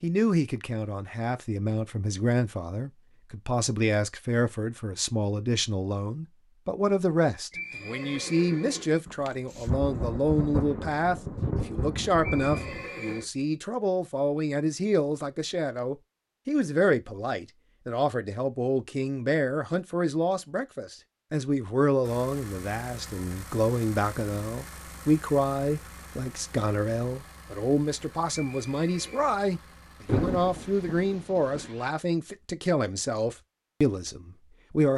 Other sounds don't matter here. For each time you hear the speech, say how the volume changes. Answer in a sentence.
The speech can be heard from 0.0 to 34.9 s, at a steady volume.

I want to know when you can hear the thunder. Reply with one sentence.
You can hear the thunder from 9.1 to 12.9 s and from 30.1 to 31.7 s.